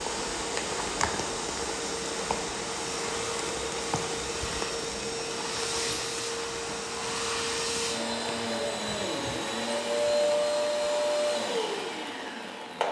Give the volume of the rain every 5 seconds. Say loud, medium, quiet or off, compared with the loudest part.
loud, medium, quiet.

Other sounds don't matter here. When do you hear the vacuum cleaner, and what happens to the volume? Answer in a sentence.
You can hear the vacuum cleaner from 0.0 to 12.8 s, getting louder.